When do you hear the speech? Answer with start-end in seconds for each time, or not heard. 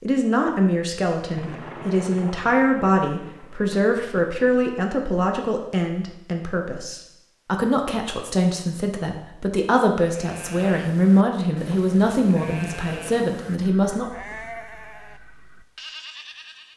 0.0-14.1.